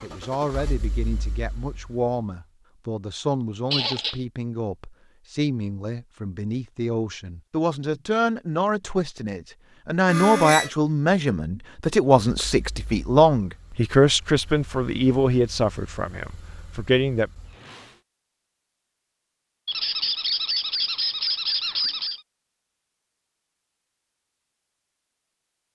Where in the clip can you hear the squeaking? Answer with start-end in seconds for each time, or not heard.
3.7-4.2, 10.1-10.7, 19.6-22.2.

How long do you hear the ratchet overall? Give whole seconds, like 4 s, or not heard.
not heard.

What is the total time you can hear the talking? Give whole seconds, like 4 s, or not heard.
17 s.